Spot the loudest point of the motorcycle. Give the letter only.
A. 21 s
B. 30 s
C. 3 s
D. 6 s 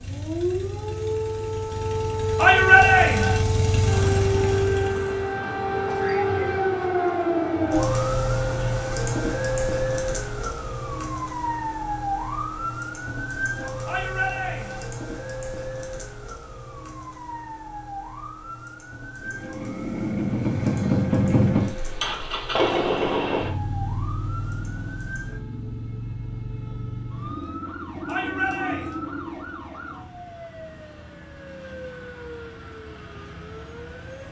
A.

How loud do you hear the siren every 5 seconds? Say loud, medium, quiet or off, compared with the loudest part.
loud, loud, medium, quiet, quiet, quiet, quiet.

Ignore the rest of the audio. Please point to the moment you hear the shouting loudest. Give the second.
3 s.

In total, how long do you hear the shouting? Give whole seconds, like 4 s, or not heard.
3 s.